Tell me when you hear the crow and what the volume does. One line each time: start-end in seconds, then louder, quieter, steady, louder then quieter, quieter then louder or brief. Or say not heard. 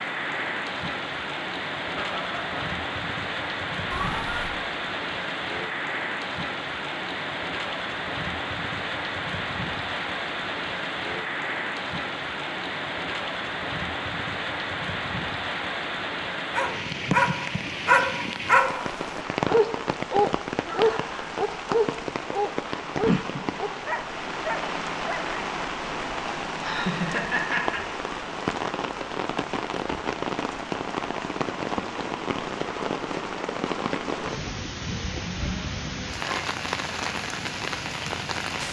not heard.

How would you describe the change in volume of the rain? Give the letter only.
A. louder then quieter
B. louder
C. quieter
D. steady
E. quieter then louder
D.